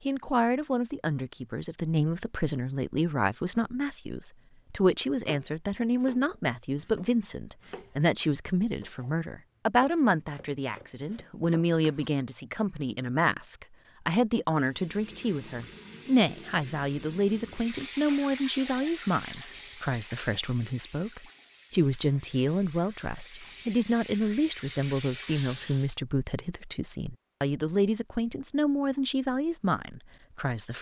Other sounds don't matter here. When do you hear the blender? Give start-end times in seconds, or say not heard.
not heard.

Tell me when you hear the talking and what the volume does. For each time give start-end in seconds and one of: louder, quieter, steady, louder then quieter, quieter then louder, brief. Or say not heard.
0.1-30.7 steady.